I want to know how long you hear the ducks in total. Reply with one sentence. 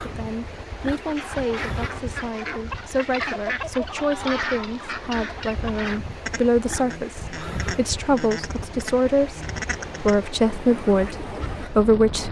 The ducks can be heard for 11 seconds in total.